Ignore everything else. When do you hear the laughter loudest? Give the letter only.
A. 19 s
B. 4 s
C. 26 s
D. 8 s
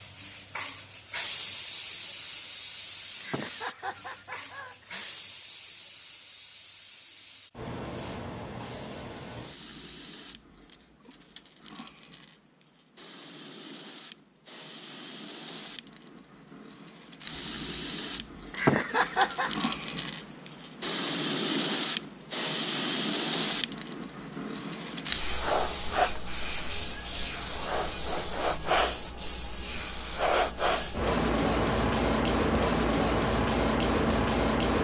A.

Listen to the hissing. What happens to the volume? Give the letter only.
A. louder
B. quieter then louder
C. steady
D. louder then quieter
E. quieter
B.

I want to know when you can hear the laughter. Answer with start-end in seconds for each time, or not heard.
3.2-5.2, 18.5-19.6.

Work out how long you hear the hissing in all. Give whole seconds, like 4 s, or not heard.
35 s.